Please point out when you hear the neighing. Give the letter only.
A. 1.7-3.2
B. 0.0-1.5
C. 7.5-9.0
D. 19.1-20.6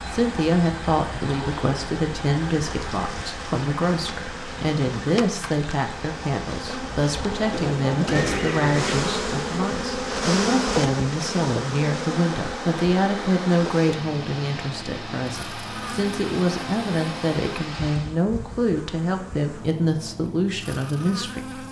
C.